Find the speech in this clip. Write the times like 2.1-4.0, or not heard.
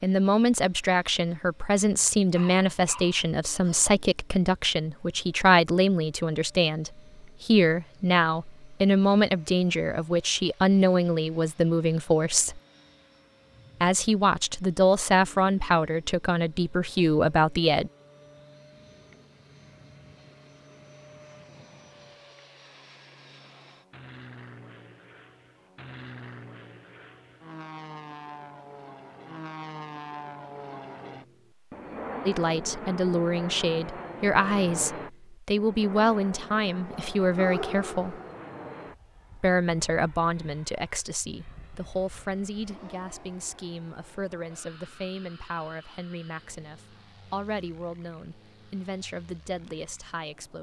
0.0-12.6, 13.8-17.9, 32.2-38.1, 39.4-50.5.